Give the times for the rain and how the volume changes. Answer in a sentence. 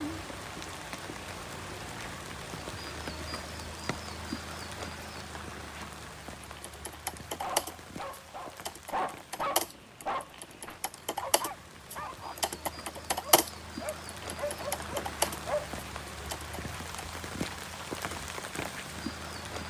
You can hear the rain from 0.0 to 19.6 s, getting quieter then louder.